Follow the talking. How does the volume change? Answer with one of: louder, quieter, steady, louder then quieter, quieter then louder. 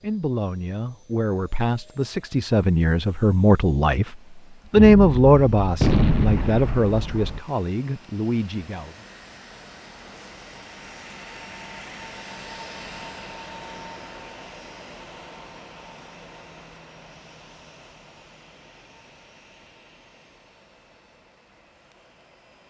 louder then quieter.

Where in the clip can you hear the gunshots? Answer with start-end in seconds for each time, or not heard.
4.8-7.4.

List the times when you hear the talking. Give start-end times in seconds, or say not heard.
0.0-8.9.